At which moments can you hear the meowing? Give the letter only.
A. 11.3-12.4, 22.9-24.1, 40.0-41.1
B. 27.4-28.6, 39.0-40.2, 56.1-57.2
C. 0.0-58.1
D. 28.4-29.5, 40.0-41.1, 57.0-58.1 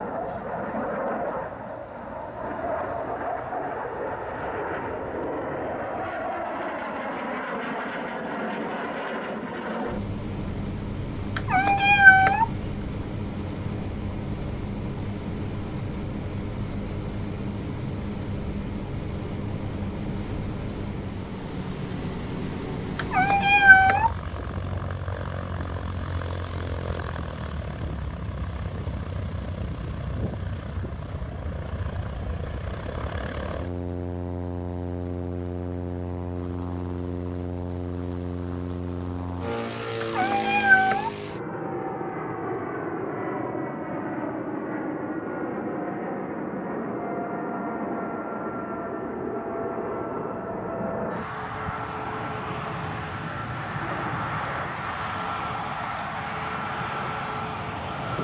A.